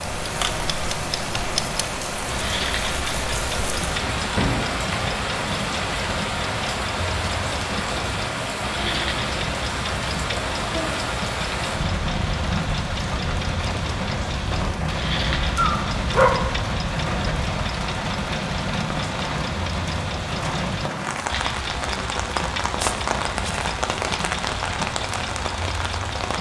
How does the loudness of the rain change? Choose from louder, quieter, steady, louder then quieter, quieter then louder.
steady.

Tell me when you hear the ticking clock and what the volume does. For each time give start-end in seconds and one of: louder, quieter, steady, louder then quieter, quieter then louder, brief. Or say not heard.
0.0-26.3 steady.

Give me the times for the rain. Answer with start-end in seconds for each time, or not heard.
0.0-26.3.